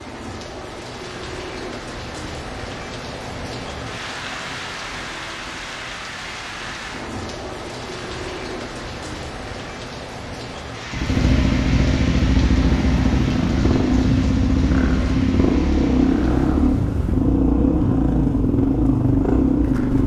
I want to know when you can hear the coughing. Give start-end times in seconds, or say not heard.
not heard.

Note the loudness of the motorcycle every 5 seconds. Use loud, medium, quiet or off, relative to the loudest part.
off, off, loud, loud.